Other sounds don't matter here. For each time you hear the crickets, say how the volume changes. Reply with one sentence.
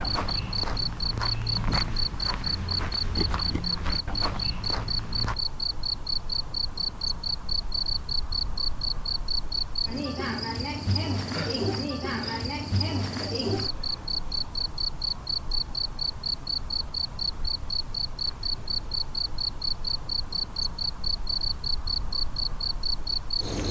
You can hear the crickets from 0.0 to 23.6 s, at a steady volume.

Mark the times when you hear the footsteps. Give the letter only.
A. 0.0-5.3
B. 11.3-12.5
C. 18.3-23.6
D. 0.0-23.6
A.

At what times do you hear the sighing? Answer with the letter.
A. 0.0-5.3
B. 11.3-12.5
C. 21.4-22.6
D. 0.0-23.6
B.